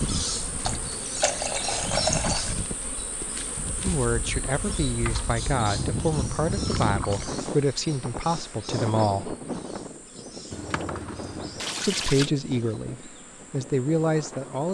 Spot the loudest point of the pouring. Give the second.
2 s.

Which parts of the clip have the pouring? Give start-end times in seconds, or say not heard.
0.6-2.5, 6.7-7.3, 10.5-12.3.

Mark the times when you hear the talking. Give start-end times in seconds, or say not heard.
3.8-9.3, 11.8-14.6.